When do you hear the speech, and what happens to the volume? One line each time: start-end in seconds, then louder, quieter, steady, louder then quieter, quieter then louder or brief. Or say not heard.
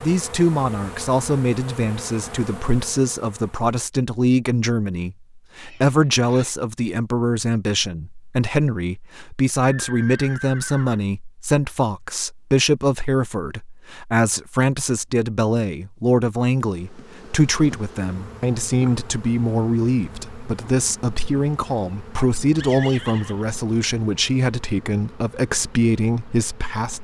0.0-26.9 steady.